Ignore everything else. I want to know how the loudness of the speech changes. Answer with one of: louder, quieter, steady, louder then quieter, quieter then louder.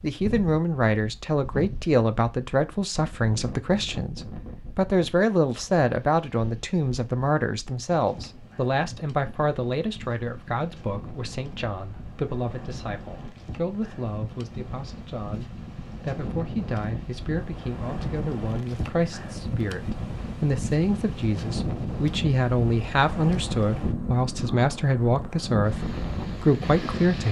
quieter then louder.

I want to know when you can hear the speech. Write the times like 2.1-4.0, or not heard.
0.0-27.2.